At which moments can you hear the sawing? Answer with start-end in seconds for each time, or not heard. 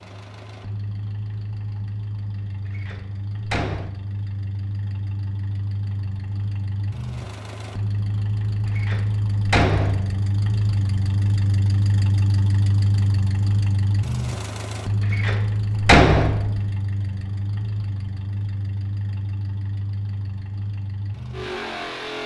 not heard.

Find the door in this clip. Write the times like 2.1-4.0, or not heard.
2.7-4.0, 8.8-10.2, 15.1-16.6.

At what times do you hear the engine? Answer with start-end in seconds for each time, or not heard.
0.0-22.2.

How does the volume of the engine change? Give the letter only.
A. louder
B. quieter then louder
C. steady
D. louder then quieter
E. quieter
D.